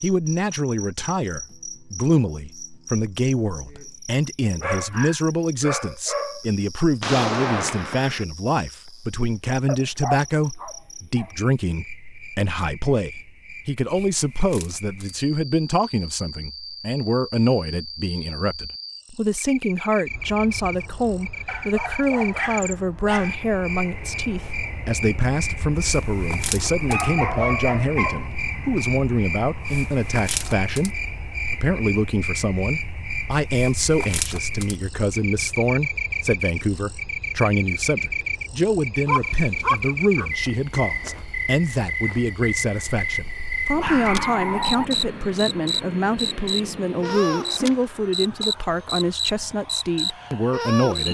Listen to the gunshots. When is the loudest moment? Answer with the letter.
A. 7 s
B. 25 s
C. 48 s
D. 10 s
A.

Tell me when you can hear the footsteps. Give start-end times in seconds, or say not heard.
not heard.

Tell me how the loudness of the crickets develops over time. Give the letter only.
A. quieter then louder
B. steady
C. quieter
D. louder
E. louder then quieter
D.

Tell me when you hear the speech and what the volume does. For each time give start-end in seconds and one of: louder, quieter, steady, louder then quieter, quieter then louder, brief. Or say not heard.
0.0-51.1 steady.